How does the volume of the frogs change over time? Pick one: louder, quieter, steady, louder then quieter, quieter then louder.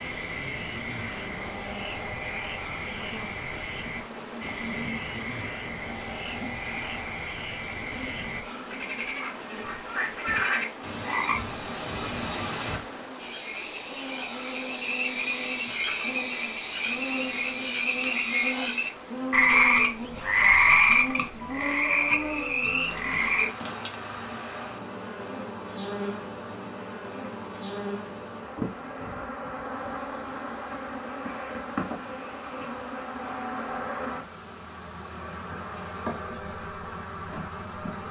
louder.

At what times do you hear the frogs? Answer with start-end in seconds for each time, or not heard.
0.0-23.4.